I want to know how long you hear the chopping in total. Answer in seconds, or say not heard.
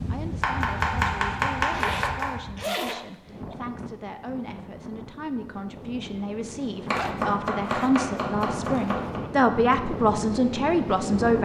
4 s.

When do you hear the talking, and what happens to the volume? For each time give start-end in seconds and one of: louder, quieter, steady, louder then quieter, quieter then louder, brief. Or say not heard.
0.1-11.3 louder.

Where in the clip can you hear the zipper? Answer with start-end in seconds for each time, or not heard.
1.6-3.5, 6.8-7.9, 8.6-9.2.